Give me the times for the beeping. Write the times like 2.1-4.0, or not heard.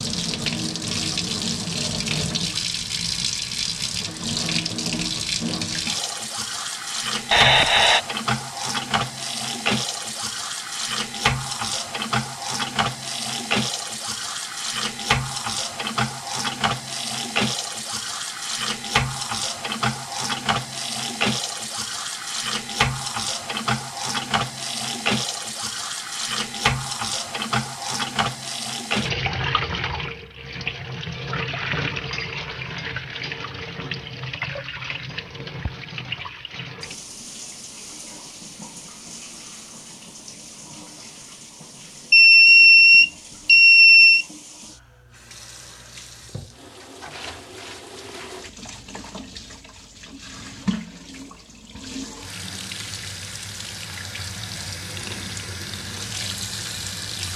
7.3-8.0, 42.1-44.2.